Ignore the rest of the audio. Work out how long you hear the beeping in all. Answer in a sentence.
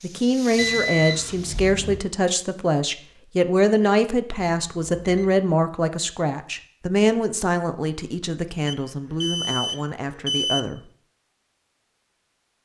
You can hear the beeping for 4 seconds altogether.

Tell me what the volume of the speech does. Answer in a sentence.
The volume of the speech goes down.